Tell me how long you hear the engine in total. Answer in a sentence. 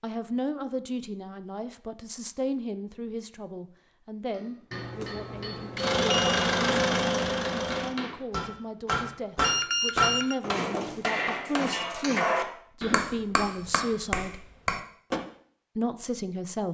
You can hear the engine for 2 seconds altogether.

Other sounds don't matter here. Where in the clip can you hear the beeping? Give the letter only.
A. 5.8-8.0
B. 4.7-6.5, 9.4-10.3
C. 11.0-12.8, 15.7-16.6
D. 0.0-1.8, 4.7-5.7
B.